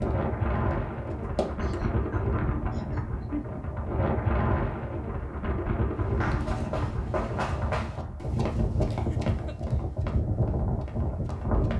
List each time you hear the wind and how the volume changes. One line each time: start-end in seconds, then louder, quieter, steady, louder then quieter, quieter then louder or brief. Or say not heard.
0.0-11.7 steady.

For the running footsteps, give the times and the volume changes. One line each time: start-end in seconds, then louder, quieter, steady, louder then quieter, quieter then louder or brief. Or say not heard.
0.0-1.8 brief
6.2-11.7 quieter.